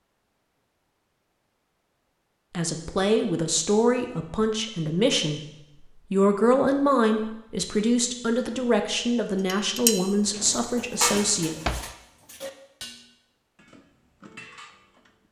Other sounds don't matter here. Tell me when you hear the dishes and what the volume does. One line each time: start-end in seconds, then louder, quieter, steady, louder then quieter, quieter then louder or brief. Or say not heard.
9.4-15.2 quieter.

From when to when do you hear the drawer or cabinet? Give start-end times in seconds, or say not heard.
10.2-11.9.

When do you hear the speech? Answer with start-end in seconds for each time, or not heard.
2.5-11.5.